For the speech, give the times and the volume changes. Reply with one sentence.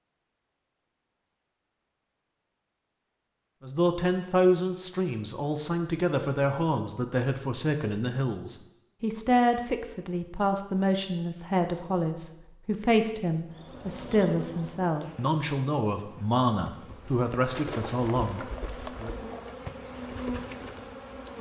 The speech can be heard from 3.6 to 19.1 s, at a steady volume.